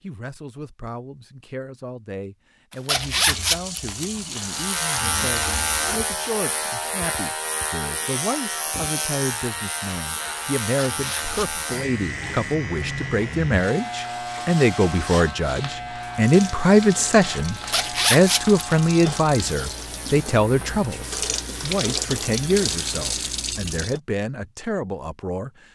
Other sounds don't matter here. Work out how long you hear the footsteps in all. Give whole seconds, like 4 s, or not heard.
not heard.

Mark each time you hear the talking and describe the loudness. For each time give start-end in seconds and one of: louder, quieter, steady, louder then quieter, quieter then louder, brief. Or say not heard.
0.0-25.6 louder then quieter.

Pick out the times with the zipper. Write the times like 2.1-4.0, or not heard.
2.7-4.5, 10.6-11.5, 17.6-18.8.